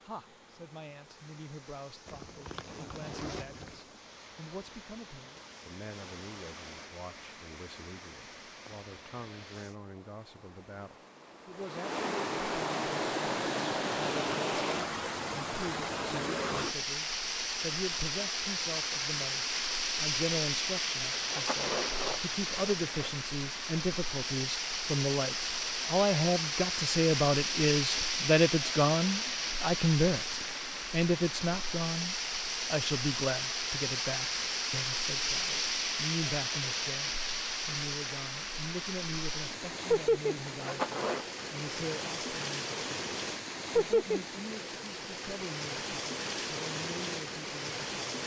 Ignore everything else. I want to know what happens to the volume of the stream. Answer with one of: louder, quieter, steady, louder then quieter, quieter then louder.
louder.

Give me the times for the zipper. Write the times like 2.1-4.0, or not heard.
2.0-3.8, 21.1-23.1, 40.5-41.2.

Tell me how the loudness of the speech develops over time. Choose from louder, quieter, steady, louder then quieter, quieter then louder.
louder then quieter.